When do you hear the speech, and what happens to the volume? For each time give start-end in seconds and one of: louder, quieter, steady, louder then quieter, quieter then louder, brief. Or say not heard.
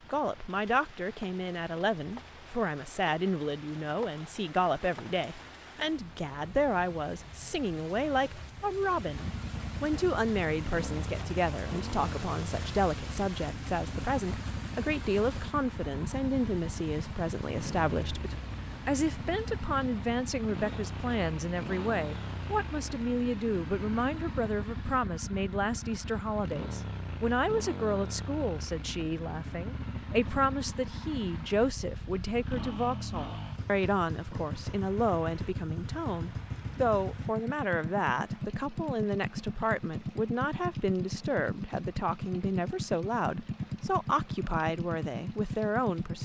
0.1-46.2 steady.